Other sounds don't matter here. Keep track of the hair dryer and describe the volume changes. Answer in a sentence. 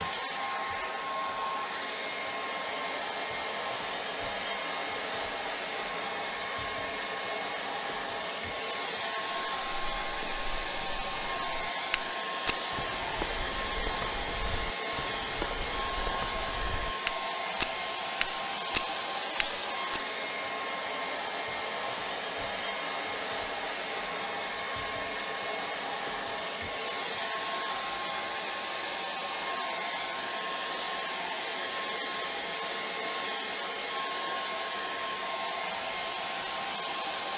The volume of the hair dryer stays about the same.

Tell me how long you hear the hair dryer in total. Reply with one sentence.
You can hear the hair dryer for 37 seconds altogether.